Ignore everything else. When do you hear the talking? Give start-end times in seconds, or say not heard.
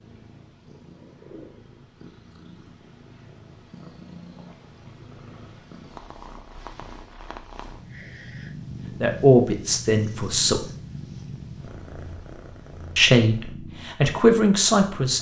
9.0-10.7, 12.9-15.1.